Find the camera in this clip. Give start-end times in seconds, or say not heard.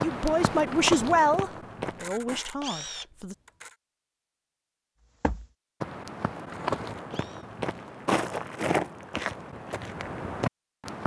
1.9-3.8, 6.4-7.5.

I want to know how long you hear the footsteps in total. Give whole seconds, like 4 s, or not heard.
8 s.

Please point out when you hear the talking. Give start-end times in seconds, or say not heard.
0.0-3.4.